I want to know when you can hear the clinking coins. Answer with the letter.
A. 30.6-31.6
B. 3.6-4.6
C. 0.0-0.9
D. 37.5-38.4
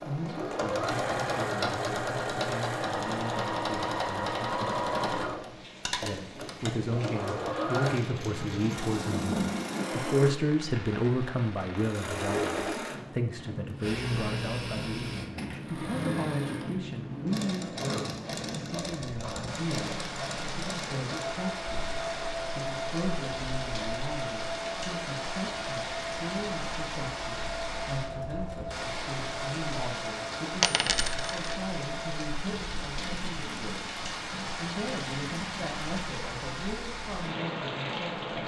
A.